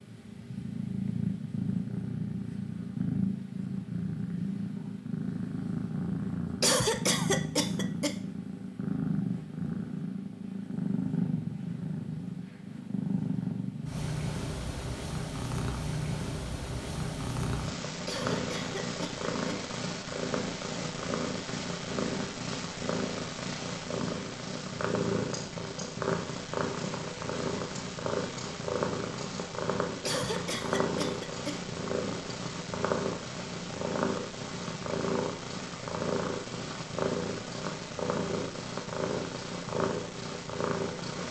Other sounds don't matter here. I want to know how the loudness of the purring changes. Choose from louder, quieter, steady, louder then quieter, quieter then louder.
steady.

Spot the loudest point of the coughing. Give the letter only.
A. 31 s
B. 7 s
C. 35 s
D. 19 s
B.